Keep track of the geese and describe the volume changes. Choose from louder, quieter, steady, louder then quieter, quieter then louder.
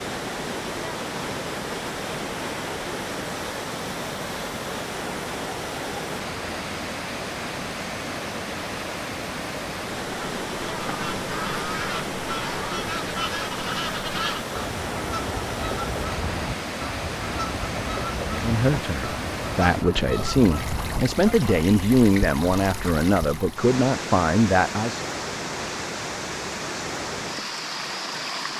steady.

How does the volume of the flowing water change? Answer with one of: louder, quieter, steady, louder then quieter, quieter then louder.
steady.